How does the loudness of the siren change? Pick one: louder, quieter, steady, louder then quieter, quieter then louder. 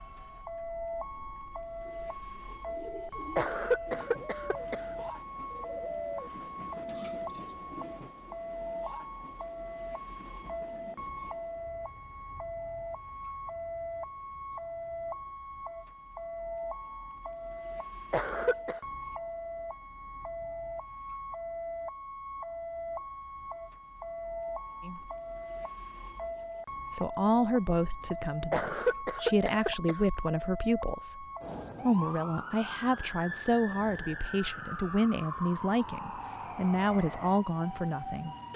steady.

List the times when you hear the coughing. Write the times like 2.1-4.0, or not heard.
3.4-5.0, 18.1-18.8, 28.5-29.9.